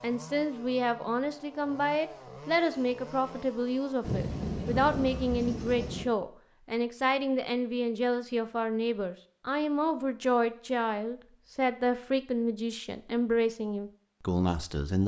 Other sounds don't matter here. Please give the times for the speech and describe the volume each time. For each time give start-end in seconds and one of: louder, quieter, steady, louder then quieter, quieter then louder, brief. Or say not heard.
0.0-15.0 steady.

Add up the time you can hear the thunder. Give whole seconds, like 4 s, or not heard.
2 s.